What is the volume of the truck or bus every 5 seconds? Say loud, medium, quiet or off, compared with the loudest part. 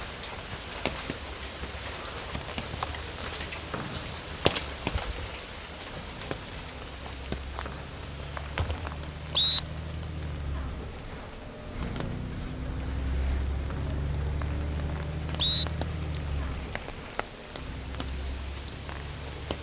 quiet, medium, loud, loud.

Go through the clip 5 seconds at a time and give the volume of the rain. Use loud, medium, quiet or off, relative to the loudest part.
loud, medium, quiet, medium.